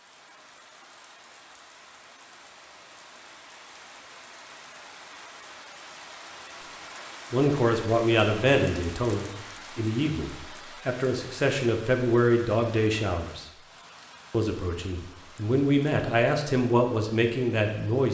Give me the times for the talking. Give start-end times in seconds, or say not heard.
7.3-13.4, 14.3-18.1.